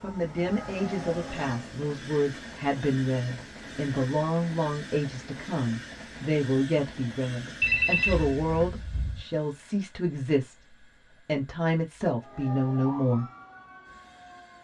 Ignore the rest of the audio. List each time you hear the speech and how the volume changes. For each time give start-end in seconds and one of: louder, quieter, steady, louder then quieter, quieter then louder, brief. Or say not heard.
0.0-13.2 steady.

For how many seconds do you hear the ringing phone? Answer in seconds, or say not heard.
2 s.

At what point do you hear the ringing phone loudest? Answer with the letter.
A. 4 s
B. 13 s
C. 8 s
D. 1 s
C.